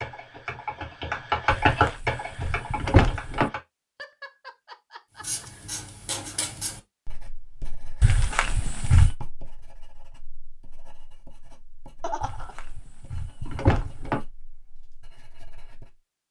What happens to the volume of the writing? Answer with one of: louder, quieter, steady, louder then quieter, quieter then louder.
quieter.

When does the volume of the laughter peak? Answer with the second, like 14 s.
12 s.